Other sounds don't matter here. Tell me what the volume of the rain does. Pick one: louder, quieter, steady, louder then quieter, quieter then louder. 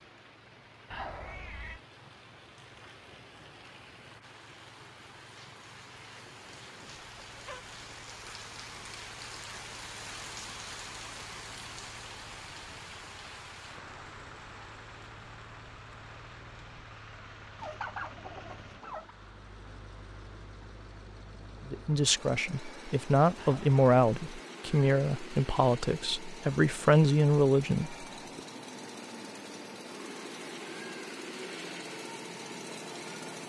louder then quieter.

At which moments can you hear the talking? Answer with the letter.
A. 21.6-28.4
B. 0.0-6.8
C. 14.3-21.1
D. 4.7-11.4
A.